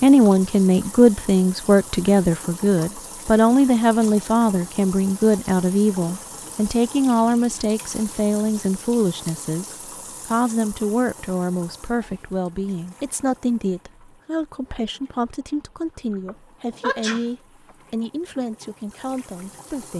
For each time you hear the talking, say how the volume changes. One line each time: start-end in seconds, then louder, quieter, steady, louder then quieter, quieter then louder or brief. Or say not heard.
0.0-19.9 quieter.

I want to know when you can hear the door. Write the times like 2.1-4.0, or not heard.
not heard.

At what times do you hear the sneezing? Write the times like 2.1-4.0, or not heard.
16.2-17.3.